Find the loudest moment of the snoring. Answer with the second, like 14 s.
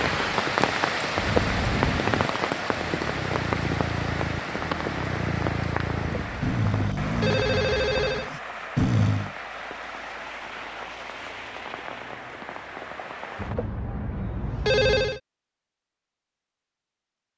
9 s.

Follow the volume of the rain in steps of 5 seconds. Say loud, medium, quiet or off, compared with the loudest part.
loud, medium, medium, off.